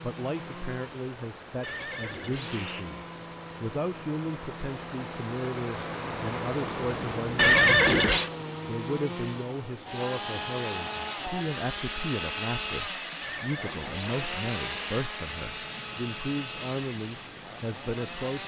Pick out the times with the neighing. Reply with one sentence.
You can hear the neighing from 1.6 to 2.9 s, from 7.3 to 8.3 s and from 13.2 to 15.1 s.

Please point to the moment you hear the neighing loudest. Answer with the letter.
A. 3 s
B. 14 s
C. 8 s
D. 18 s
C.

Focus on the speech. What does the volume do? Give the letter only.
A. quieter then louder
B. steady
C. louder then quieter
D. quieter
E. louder
B.